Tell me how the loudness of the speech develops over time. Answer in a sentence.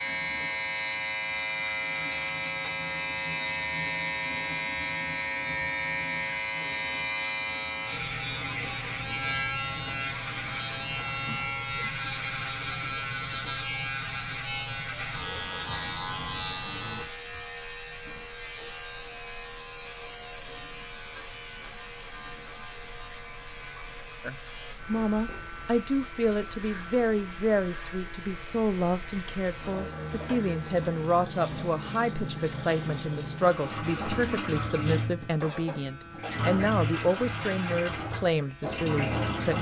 The loudness of the speech stays about the same.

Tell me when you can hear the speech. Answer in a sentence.
The speech can be heard from 24.2 to 39.5 s.